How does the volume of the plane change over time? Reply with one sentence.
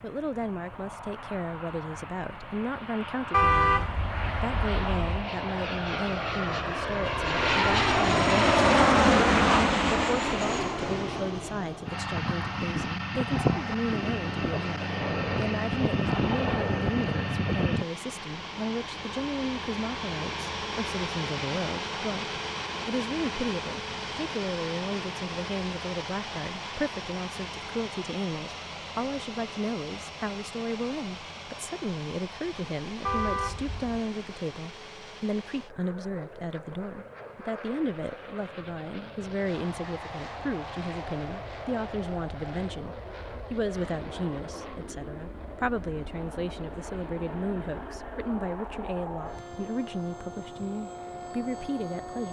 The loudness of the plane goes down.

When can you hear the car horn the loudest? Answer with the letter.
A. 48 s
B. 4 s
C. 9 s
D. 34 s
B.